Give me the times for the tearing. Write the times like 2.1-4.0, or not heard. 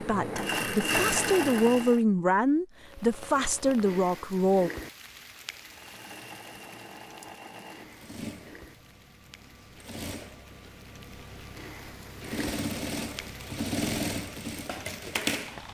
not heard.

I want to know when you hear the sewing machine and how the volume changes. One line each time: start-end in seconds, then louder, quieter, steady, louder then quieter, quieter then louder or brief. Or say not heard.
0.0-2.0 brief
5.6-15.6 louder.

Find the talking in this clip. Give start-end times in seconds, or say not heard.
0.0-4.7.